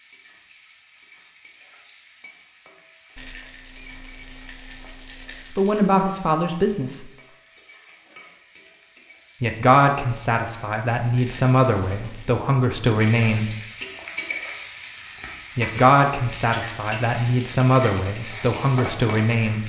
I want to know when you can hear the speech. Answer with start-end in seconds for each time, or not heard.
5.5-7.1, 9.4-13.6, 15.6-19.6.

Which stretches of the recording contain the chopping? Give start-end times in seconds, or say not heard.
not heard.